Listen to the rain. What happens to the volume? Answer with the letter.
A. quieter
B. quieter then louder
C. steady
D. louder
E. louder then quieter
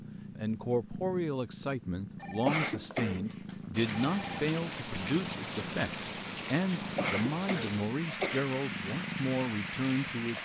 C.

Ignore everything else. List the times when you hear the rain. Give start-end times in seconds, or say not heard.
3.7-10.4.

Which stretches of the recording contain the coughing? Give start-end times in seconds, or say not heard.
2.5-3.3, 7.0-8.5.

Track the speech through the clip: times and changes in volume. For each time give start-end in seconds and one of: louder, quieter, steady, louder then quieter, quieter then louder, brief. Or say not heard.
0.3-10.4 steady.